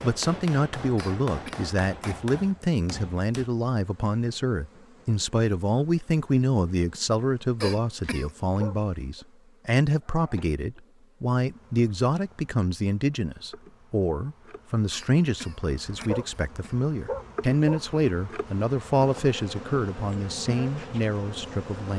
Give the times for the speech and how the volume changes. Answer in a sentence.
You can hear the speech from 0.0 to 21.9 s, at a steady volume.